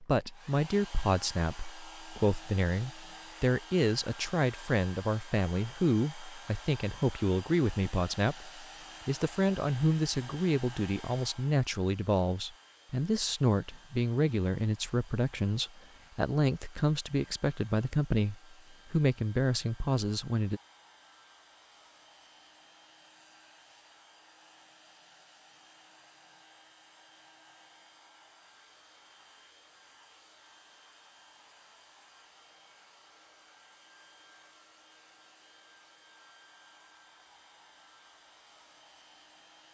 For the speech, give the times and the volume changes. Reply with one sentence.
The speech can be heard from 0.0 to 20.6 s, at a steady volume.